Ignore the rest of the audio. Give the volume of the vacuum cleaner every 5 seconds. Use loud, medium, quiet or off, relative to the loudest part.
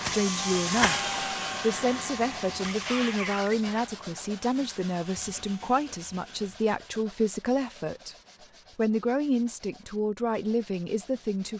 loud, quiet, off.